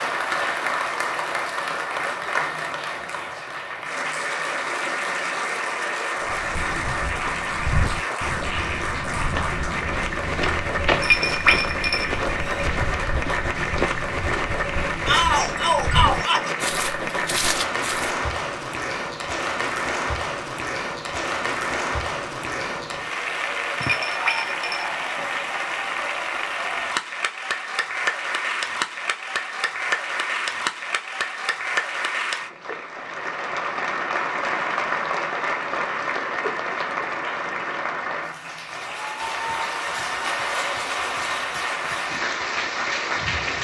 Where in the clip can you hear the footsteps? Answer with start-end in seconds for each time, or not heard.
6.2-18.1.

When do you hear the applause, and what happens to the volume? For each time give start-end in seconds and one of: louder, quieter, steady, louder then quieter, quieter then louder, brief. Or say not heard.
0.0-43.5 steady.